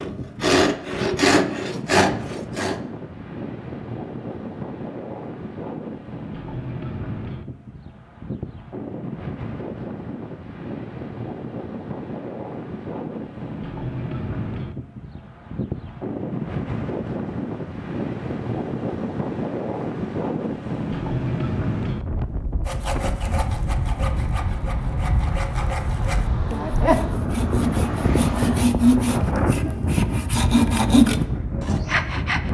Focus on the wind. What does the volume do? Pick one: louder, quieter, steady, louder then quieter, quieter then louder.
louder.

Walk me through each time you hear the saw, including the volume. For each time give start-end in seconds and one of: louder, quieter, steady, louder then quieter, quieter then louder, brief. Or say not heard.
0.0-2.8 brief
22.6-32.4 louder.